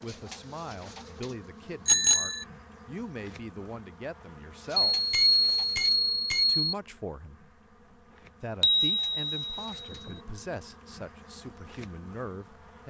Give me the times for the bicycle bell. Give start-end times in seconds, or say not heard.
1.9-2.5, 4.9-6.7, 8.6-9.9.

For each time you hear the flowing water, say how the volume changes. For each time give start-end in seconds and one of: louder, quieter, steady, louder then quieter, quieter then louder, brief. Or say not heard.
not heard.